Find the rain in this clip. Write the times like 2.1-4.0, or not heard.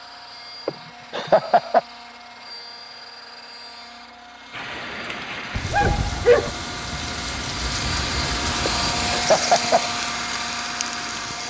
4.5-11.4.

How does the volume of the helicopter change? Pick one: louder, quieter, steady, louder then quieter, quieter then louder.
louder.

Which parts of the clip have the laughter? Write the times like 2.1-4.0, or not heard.
0.7-1.8, 8.7-9.9.